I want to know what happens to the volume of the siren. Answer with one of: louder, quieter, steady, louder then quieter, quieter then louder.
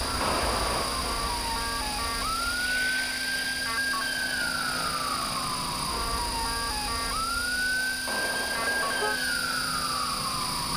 steady.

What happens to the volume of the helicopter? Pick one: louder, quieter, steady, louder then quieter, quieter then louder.
steady.